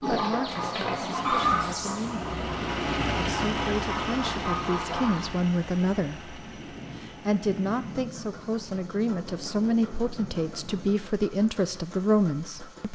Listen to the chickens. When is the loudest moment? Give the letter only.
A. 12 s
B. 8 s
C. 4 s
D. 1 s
D.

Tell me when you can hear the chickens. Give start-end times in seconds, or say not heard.
0.0-5.3.